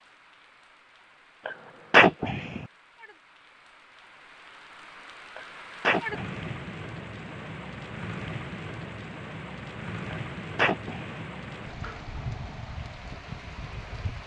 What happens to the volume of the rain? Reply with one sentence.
The volume of the rain goes up.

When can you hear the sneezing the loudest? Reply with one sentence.
The volume of the sneezing peaks at 2 seconds.